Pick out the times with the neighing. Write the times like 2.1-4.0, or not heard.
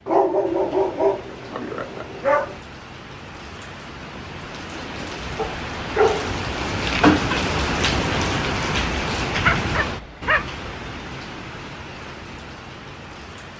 not heard.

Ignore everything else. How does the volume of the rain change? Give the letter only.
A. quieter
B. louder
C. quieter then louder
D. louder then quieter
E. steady
D.